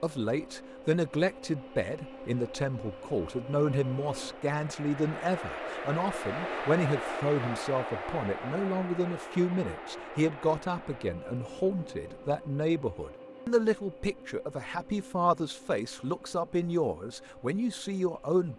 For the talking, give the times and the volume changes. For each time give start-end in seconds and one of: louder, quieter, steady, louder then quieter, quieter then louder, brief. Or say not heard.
0.0-18.5 steady.